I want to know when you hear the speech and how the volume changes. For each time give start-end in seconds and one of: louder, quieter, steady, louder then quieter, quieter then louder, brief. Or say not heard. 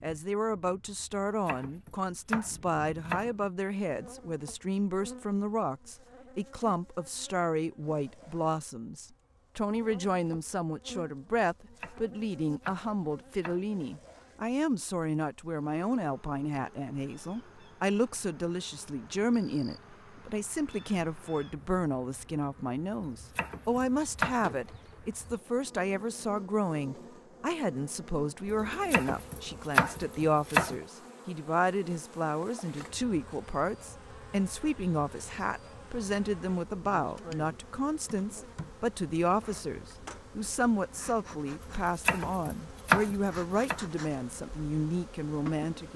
0.0-45.9 steady.